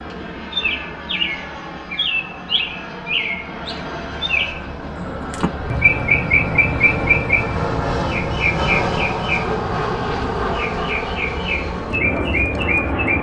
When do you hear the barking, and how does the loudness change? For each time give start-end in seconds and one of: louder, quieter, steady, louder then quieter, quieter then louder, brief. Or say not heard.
not heard.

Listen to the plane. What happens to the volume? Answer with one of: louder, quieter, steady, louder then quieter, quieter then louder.
louder.